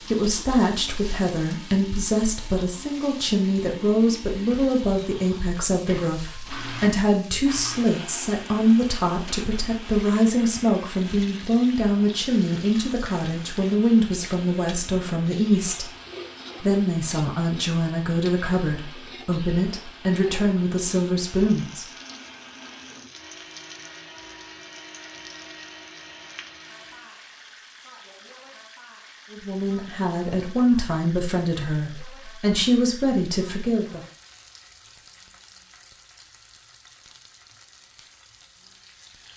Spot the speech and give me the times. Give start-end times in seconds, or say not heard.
0.0-15.9, 16.6-21.9, 29.3-34.0.